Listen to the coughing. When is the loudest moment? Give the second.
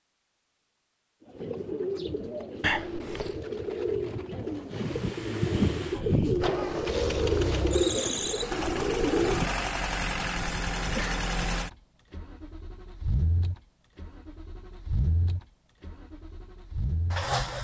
3 s.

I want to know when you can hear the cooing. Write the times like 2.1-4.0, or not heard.
1.2-9.5.